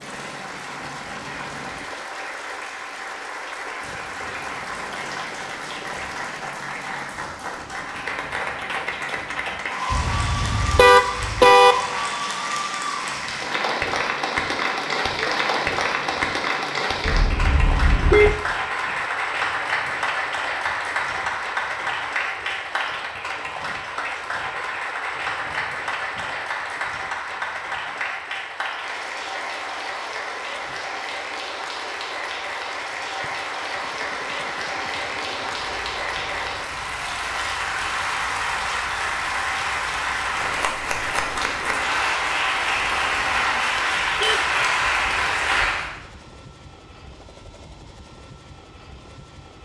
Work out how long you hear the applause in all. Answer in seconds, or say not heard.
46 s.